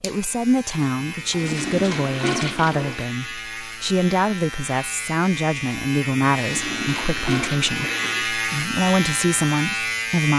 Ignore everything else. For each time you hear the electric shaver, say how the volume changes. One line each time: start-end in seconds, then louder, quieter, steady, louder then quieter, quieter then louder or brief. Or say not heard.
0.0-10.3 louder.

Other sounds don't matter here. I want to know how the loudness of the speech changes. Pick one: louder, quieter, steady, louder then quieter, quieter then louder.
steady.